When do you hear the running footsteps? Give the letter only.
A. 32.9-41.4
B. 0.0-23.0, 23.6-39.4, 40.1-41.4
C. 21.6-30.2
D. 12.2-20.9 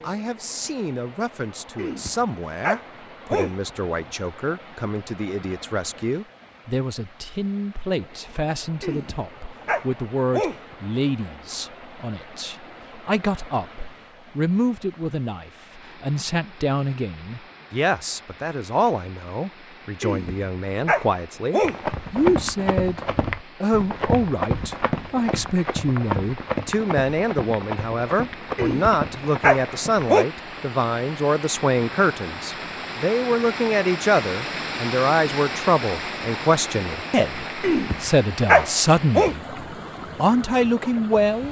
C.